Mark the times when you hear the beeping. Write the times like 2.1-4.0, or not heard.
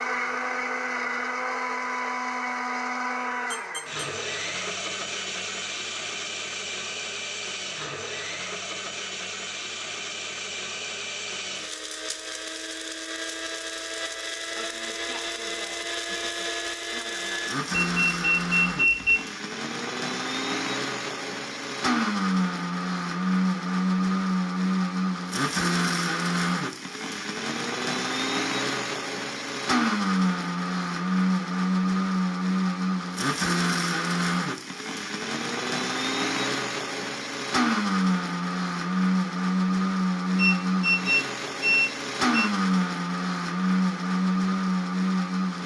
3.5-4.0, 17.9-19.2, 40.4-42.5.